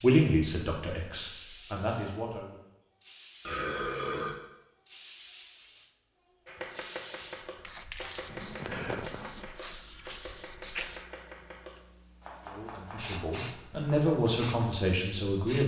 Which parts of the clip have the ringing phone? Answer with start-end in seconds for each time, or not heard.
8.3-9.5.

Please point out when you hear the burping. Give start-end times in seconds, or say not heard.
3.5-4.4.